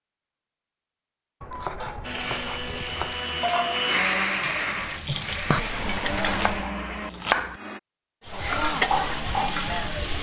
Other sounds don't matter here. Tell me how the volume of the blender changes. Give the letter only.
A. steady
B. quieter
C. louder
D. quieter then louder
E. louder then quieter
E.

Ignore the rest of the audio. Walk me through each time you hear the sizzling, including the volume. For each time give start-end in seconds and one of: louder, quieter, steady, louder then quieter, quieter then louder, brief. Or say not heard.
2.5-6.7 quieter then louder
8.2-10.1 brief.